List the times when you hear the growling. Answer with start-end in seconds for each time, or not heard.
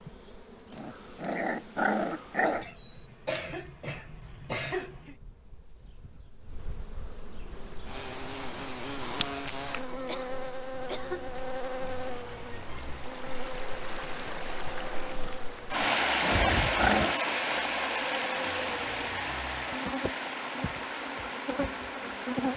0.7-2.6, 15.7-17.2.